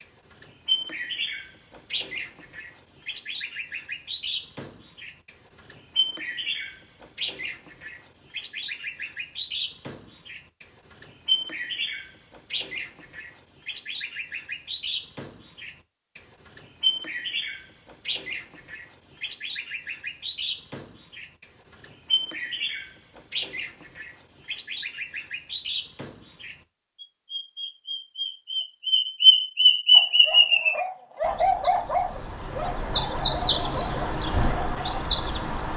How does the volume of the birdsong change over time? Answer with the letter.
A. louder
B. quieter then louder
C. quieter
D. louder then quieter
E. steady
A.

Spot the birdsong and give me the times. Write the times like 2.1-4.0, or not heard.
0.0-35.7.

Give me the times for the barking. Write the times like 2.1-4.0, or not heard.
29.9-35.0.